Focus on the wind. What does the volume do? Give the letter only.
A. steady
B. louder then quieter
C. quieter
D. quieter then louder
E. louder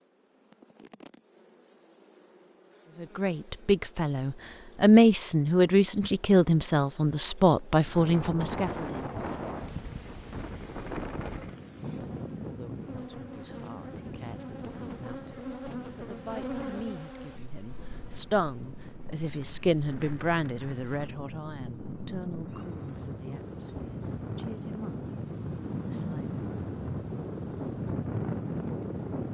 D.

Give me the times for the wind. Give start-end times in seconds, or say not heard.
7.8-29.2.